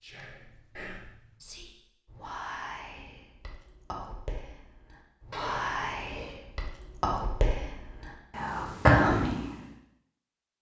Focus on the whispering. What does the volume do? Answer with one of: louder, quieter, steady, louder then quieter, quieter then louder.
louder.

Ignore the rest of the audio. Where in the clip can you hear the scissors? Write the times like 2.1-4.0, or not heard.
0.3-1.4, 5.3-6.4.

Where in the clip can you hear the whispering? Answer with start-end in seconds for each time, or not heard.
0.0-9.6.